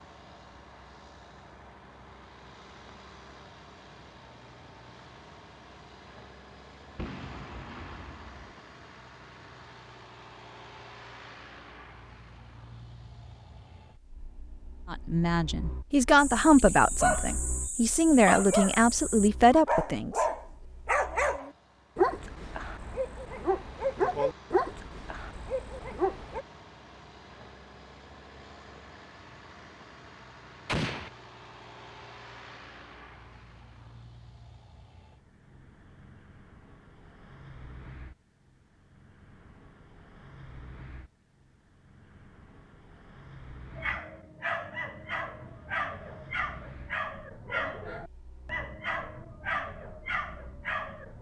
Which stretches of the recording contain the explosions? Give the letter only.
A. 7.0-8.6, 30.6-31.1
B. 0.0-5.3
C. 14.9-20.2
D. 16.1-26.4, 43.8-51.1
A.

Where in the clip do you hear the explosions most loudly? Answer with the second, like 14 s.
31 s.